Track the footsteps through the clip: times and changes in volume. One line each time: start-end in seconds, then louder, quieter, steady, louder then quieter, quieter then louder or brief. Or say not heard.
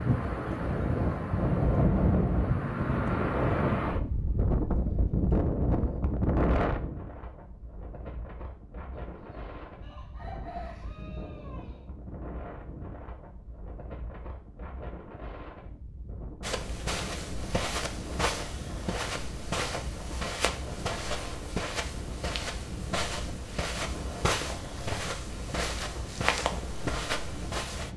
16.4-27.9 steady.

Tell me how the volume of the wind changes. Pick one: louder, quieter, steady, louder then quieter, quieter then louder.
quieter.